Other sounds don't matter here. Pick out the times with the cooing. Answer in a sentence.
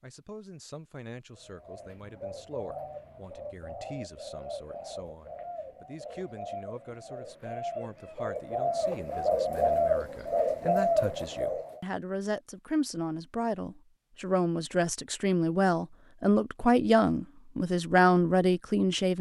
The cooing can be heard from 1.4 to 11.8 s.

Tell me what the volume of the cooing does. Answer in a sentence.
The loudness of the cooing goes up.